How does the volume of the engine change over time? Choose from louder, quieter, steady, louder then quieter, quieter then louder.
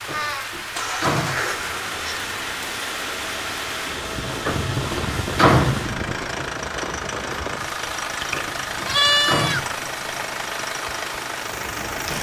steady.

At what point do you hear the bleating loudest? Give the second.
9 s.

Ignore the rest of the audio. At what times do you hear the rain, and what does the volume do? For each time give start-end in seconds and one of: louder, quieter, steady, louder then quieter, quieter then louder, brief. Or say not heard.
0.0-12.1 steady.